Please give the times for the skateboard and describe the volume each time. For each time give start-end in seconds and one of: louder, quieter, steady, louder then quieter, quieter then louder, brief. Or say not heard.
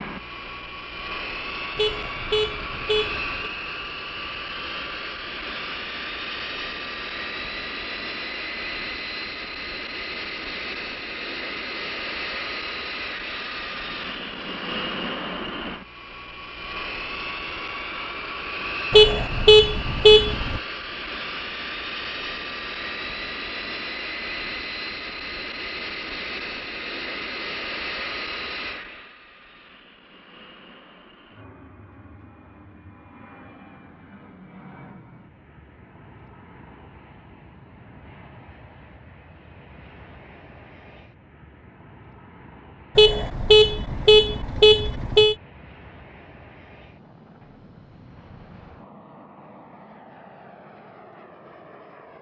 not heard.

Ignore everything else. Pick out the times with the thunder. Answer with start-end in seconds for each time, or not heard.
not heard.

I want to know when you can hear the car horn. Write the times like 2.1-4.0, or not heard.
1.8-3.5, 18.9-20.6, 43.0-45.4.